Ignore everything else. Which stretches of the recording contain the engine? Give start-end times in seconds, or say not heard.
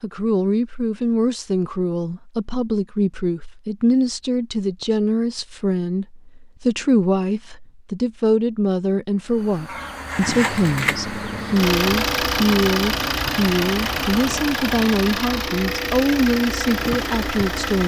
9.9-17.8.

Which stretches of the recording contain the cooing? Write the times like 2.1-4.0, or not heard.
not heard.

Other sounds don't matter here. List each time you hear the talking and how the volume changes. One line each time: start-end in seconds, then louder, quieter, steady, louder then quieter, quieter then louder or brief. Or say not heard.
0.0-17.8 steady.